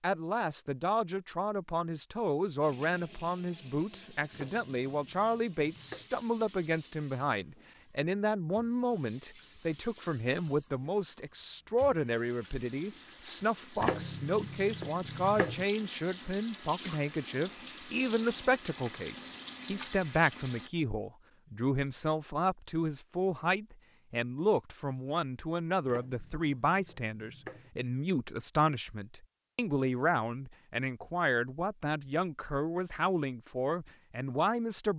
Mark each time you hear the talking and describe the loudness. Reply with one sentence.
The talking can be heard from 0.0 to 34.9 s, at a steady volume.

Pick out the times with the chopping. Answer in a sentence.
The chopping can be heard from 4.3 to 6.1 s, from 13.8 to 15.7 s and from 25.9 to 27.7 s.